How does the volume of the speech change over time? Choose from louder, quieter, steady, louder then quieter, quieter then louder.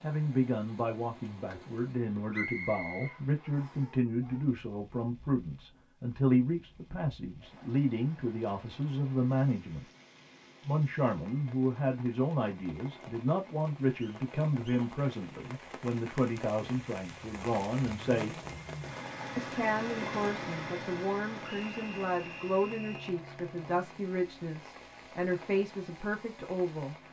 steady.